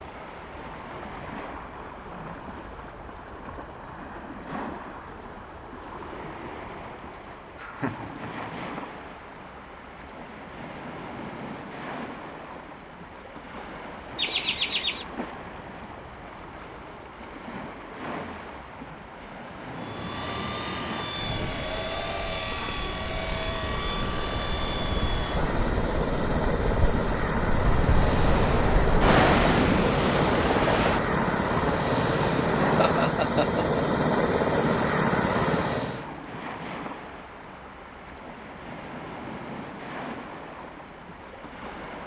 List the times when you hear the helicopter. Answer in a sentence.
You can hear the helicopter from 19.8 to 36.1 s.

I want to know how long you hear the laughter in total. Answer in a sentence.
The laughter can be heard for 3 seconds in total.